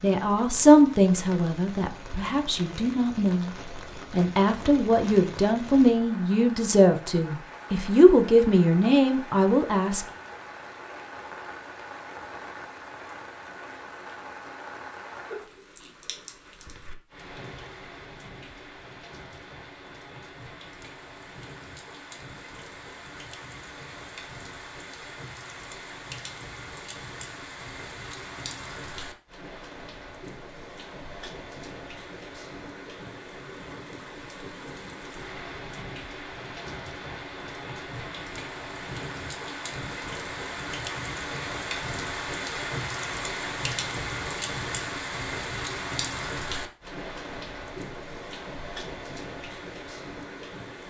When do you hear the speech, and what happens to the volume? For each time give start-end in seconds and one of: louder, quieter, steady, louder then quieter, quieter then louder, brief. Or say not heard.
0.0-10.1 quieter then louder.